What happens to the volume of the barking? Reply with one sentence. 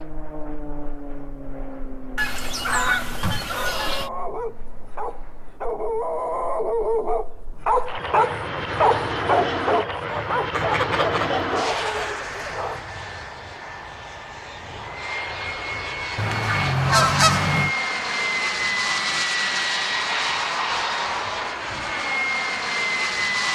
The loudness of the barking goes up, then down.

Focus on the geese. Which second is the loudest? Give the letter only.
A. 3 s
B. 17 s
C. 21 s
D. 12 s
B.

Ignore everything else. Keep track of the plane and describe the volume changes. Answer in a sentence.
The volume of the plane goes up.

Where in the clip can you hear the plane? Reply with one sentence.
You can hear the plane from 0.0 to 23.5 s.